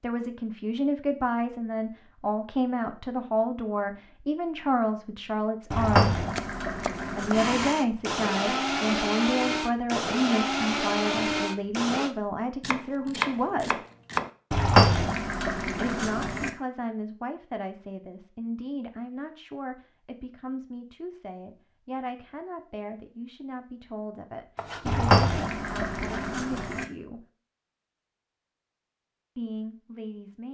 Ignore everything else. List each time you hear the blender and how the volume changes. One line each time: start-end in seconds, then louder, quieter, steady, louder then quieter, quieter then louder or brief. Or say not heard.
7.3-12.2 steady.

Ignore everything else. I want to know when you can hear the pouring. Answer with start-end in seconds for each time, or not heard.
5.7-7.7, 14.5-16.5, 24.9-26.9.